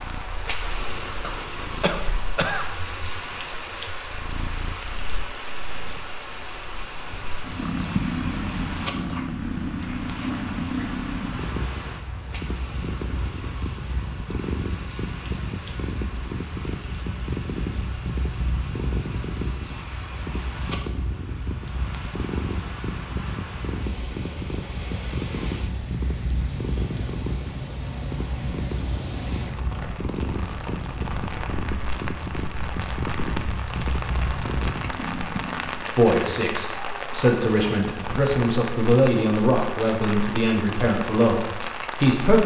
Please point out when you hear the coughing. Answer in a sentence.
You can hear the coughing from 1.2 to 2.6 s.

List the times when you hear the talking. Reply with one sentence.
You can hear the talking from 36.0 to 42.4 s.